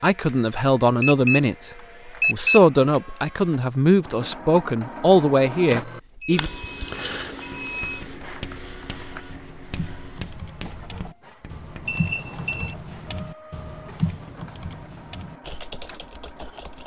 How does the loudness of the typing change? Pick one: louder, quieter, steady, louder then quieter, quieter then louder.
louder then quieter.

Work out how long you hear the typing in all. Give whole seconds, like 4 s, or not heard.
9 s.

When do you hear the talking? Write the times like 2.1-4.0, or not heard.
0.0-6.5.